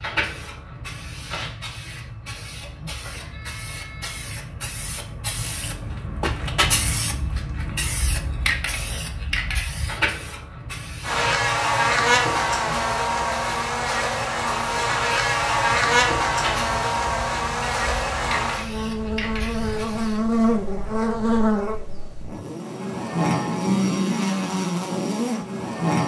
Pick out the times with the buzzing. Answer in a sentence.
The buzzing can be heard from 11.0 to 26.0 s.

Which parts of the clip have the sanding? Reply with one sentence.
The sanding can't be heard in this clip.